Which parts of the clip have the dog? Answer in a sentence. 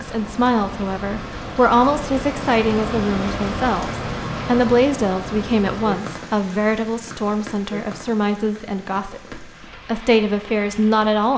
The dog can't be heard in this clip.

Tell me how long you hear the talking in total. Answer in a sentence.
The talking can be heard for 11 seconds in total.